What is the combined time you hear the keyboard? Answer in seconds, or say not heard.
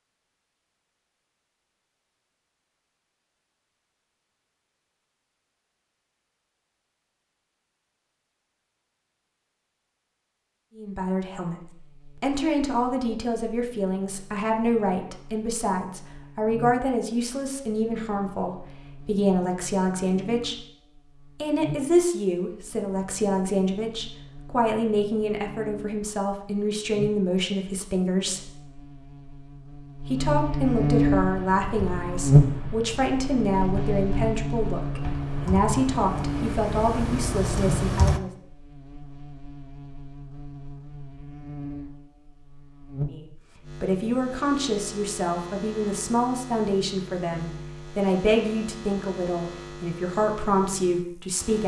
7 s.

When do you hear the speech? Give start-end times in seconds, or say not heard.
10.8-11.6, 12.2-20.6, 21.4-28.5, 30.1-38.3, 43.0-51.6.